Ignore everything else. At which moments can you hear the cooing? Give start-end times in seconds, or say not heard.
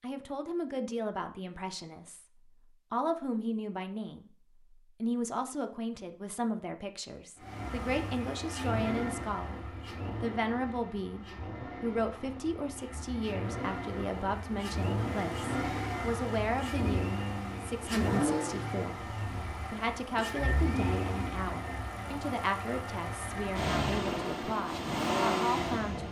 not heard.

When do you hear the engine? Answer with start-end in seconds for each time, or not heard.
7.4-26.0.